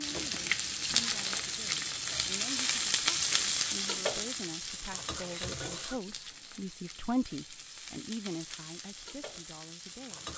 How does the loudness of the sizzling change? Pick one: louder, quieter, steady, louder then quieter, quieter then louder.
quieter.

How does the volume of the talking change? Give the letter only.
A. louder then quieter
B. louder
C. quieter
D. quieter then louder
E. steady
A.